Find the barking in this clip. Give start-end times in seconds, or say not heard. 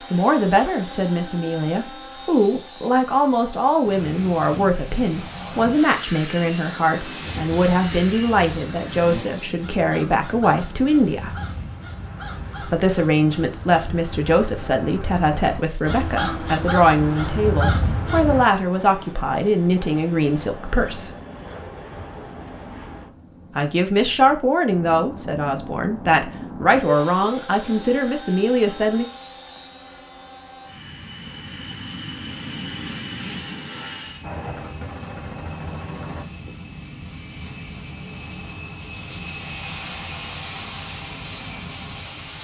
not heard.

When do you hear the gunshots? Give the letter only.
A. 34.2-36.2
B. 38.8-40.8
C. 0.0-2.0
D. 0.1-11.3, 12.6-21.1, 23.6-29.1
A.